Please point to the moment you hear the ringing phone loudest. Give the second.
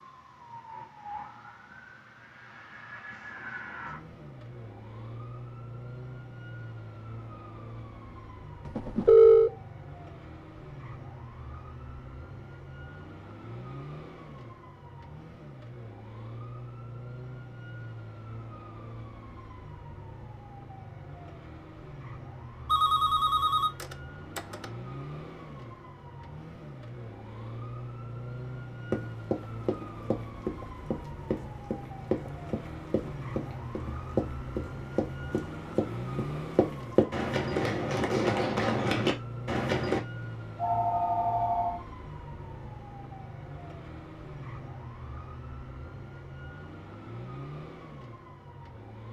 9 s.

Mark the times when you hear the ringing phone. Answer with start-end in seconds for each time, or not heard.
8.7-9.5, 22.6-24.6, 40.5-41.8.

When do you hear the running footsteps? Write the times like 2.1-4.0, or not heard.
28.9-40.0.